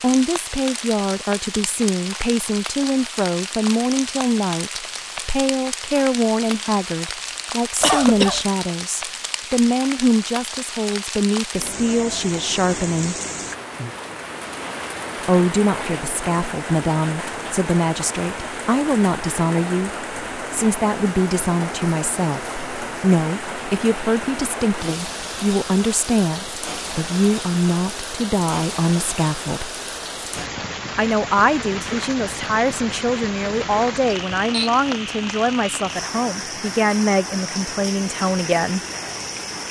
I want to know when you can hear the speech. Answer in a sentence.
You can hear the speech from 0.0 to 13.2 s, from 15.2 to 29.7 s and from 30.9 to 38.8 s.